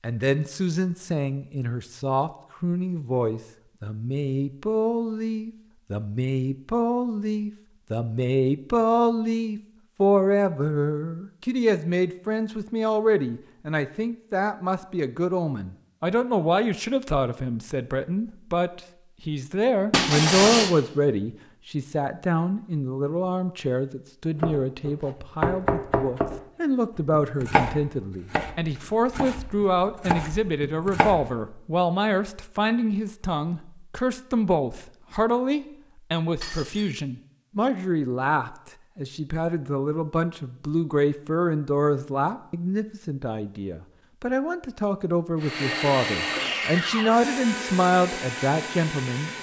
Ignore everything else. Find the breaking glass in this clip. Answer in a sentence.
The breaking glass can be heard from 19.9 to 20.7 s and from 36.4 to 36.9 s.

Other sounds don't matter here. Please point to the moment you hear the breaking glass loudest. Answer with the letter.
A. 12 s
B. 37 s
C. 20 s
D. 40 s
C.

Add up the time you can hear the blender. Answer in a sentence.
You can hear the blender for 4 seconds altogether.